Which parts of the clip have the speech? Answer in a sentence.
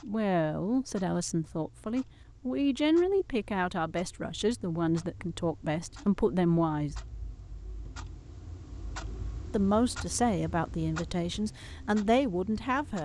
You can hear the speech from 0.0 to 7.0 s and from 9.5 to 13.0 s.